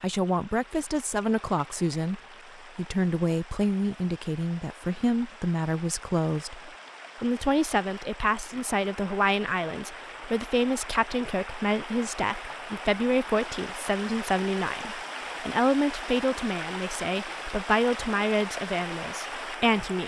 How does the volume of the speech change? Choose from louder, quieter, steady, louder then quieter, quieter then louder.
steady.